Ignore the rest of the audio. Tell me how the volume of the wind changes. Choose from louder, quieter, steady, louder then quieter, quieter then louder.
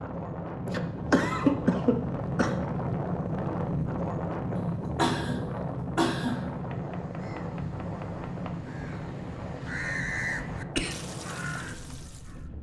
quieter.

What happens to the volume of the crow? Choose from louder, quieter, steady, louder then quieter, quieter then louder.
louder then quieter.